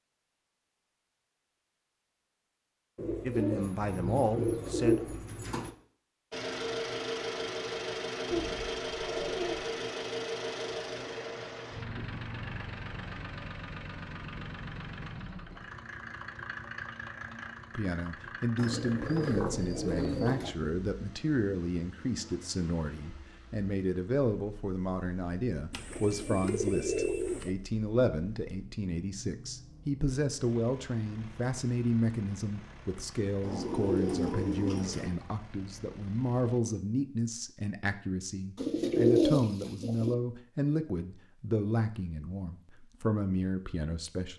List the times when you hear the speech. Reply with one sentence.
You can hear the speech from 3.2 to 5.2 s and from 17.8 to 44.3 s.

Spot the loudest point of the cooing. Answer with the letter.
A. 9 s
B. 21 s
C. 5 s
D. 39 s
D.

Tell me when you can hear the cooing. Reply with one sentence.
You can hear the cooing from 3.0 to 5.7 s, from 8.3 to 9.8 s, from 18.6 to 20.6 s, from 25.7 to 27.6 s, from 33.4 to 35.1 s and from 38.5 to 40.1 s.